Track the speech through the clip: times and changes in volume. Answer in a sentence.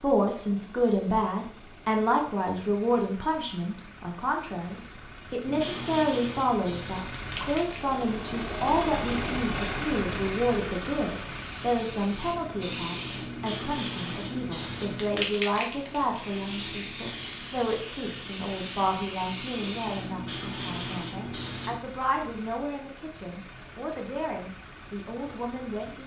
You can hear the speech from 0.0 to 26.0 s, getting quieter.